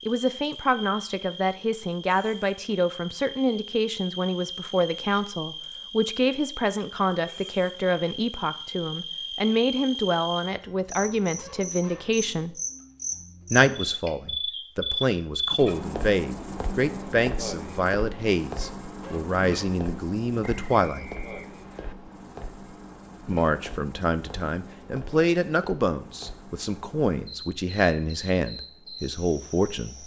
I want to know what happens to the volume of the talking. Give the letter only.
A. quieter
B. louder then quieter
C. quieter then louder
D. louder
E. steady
E.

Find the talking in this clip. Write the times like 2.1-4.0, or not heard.
0.1-12.6, 13.5-21.1, 23.2-30.0.